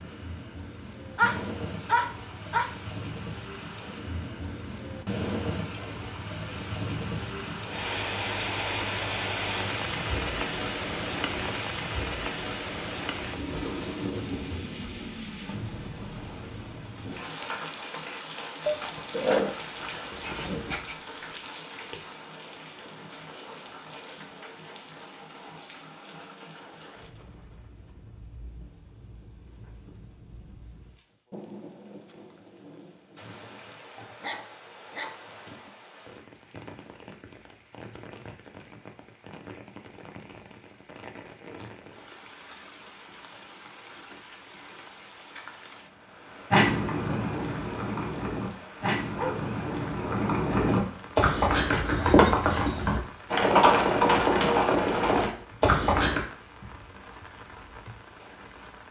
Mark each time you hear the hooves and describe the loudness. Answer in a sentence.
The hooves can be heard from 46.5 to 56.2 s, getting louder.